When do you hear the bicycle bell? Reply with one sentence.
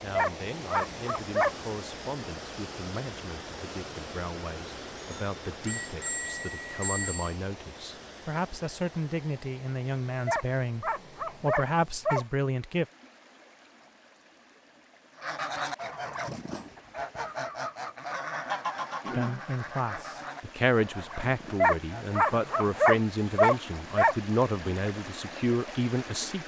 You can hear the bicycle bell from 5.0 to 7.3 s.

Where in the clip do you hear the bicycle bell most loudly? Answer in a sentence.
The loudest moment of the bicycle bell is at 7 seconds.